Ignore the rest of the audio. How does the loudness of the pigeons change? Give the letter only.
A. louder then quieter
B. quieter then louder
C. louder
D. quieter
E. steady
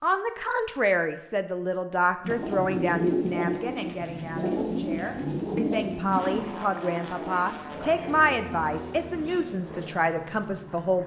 D.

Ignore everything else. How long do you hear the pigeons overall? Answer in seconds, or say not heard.
8 s.